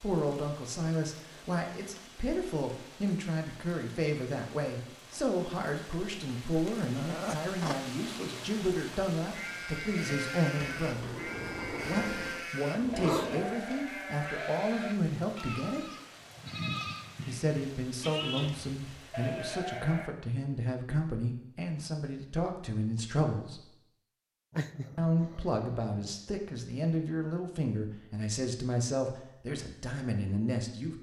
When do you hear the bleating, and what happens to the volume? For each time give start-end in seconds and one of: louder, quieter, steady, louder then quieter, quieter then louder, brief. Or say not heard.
9.3-20.1 steady.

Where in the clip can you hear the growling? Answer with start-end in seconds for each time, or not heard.
7.0-7.8, 12.8-13.6, 24.5-26.1.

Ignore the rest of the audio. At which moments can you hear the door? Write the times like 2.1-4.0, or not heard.
10.6-12.5.